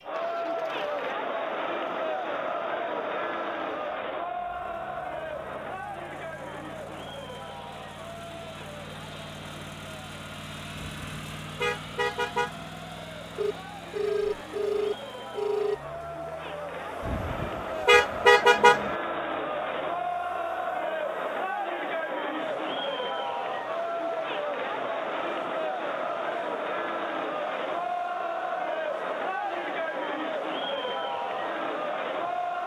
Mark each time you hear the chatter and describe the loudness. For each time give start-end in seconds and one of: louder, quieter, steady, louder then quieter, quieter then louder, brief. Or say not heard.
0.0-32.6 quieter then louder.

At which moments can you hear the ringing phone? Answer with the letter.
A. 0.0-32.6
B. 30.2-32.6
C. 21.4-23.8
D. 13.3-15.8
D.